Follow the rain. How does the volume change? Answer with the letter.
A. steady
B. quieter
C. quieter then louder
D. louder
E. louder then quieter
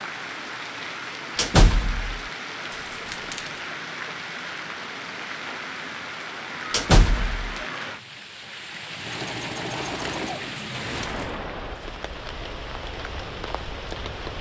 A.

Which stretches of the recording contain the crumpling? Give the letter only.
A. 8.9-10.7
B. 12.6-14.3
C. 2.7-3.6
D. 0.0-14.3
C.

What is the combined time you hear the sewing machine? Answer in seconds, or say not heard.
2 s.